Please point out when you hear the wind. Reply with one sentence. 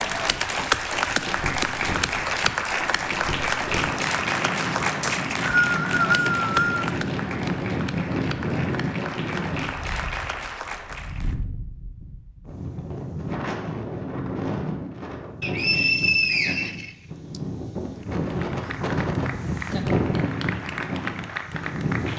The wind can be heard from 0.0 to 22.1 s.